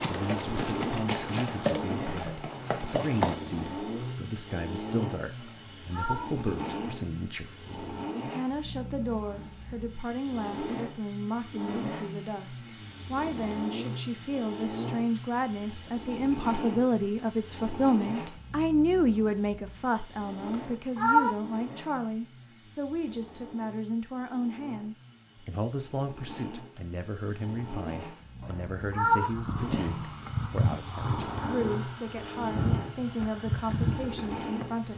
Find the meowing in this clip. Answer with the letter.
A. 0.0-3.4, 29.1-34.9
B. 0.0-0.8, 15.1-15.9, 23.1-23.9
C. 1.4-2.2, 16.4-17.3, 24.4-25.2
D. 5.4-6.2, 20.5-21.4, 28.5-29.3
D.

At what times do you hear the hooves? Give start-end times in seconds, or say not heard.
0.0-3.4, 29.1-34.9.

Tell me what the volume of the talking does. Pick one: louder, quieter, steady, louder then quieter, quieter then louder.
louder then quieter.